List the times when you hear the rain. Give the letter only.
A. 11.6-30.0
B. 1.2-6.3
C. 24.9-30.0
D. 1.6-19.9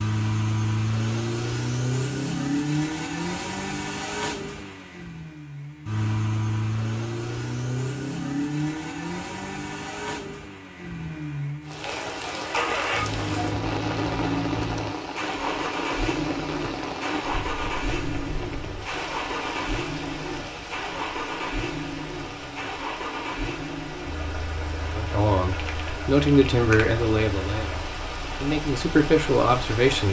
A.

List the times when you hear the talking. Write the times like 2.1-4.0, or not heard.
24.9-30.0.